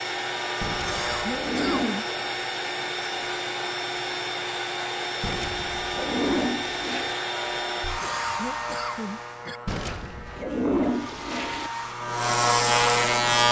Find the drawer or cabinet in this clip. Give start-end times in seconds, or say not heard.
not heard.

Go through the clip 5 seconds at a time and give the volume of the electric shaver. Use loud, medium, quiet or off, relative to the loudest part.
quiet, quiet, loud.